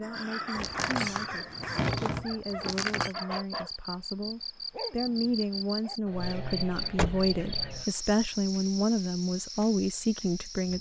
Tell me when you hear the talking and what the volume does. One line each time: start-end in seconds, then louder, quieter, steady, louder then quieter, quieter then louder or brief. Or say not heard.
0.0-10.7 louder.